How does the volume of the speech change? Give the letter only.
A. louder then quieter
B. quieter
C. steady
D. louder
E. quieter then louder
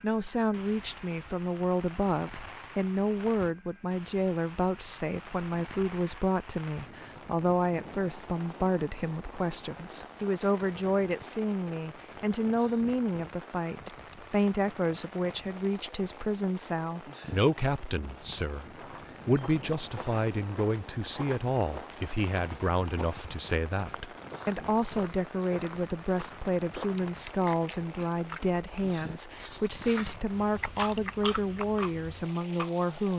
C.